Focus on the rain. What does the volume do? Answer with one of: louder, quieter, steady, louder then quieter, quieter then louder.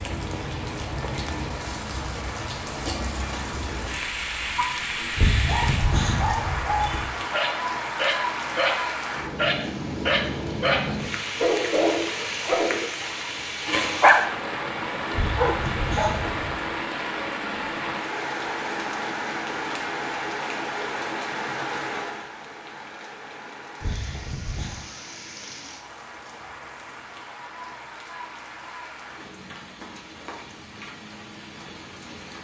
quieter.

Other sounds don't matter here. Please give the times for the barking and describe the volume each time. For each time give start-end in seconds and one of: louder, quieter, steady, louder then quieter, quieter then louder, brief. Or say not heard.
4.4-16.2 louder.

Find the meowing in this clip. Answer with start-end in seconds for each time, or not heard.
5.2-7.0, 15.1-16.6, 23.8-24.8.